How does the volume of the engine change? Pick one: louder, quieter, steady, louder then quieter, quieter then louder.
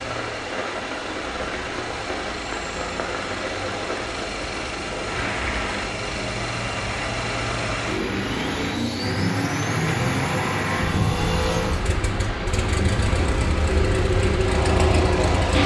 louder.